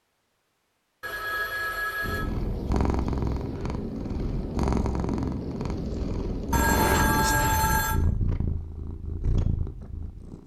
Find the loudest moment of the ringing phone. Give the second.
7 s.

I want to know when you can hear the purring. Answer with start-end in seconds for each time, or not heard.
2.0-10.4.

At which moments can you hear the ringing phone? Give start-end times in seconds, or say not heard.
1.0-2.2, 6.5-8.0.